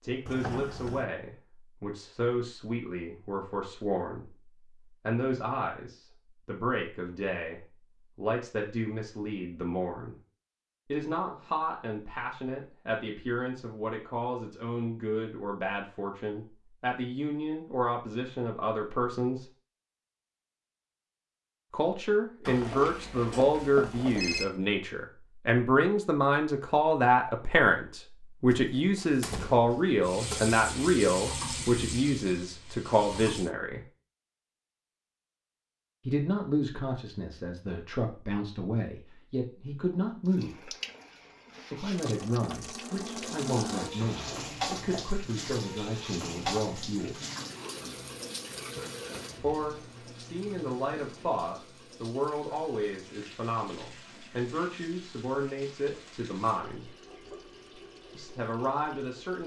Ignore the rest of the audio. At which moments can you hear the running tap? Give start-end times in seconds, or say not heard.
30.0-33.5, 40.2-59.4.